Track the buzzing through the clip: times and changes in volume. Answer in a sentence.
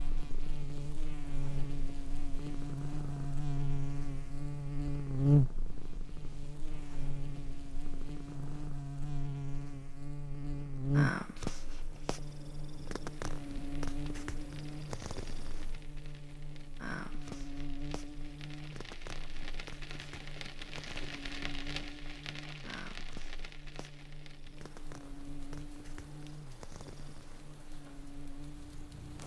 You can hear the buzzing from 0.0 to 29.2 s, getting quieter.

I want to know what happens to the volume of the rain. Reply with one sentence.
The volume of the rain goes up, then down.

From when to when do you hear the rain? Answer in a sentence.
The rain can be heard from 13.1 to 29.2 s.